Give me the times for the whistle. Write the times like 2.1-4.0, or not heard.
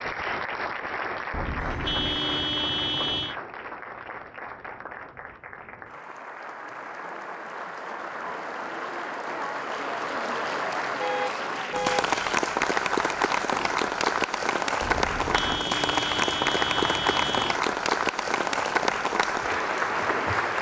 not heard.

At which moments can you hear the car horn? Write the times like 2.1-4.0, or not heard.
1.3-3.4, 11.0-12.1, 14.8-17.6.